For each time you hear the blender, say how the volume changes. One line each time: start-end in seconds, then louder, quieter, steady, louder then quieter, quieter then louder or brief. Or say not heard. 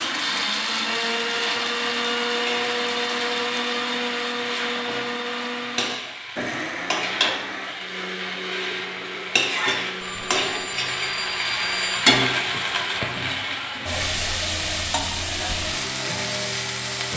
0.0-17.1 quieter.